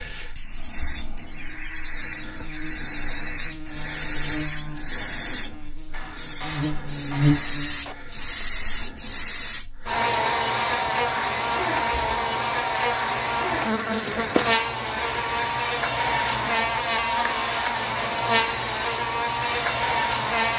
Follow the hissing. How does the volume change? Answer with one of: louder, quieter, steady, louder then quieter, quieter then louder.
steady.